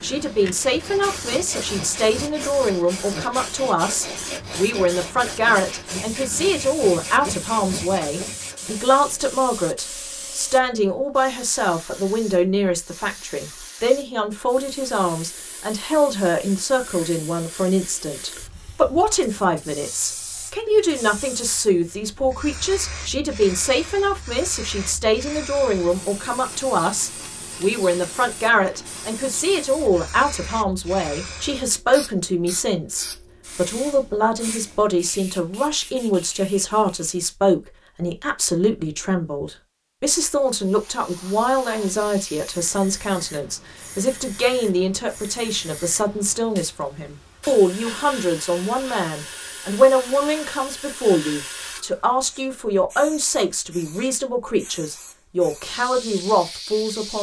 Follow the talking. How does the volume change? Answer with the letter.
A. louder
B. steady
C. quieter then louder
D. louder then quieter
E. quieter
B.